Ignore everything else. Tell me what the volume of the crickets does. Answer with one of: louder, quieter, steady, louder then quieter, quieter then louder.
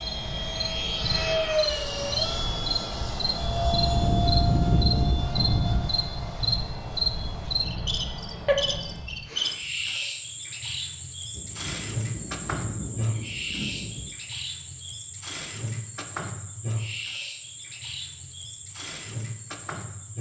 quieter.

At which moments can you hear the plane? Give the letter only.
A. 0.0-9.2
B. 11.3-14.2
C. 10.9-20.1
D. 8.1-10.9
A.